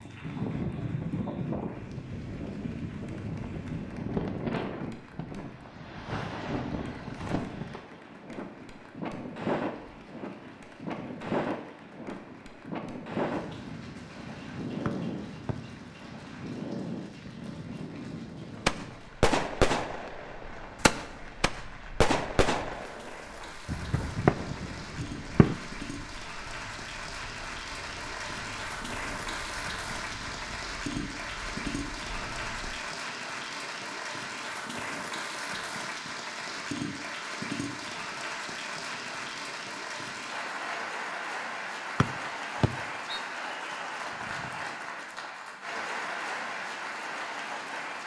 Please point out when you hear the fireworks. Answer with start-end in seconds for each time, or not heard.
18.6-25.6.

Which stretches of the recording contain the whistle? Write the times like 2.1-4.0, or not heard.
14.8-15.6, 42.0-43.2.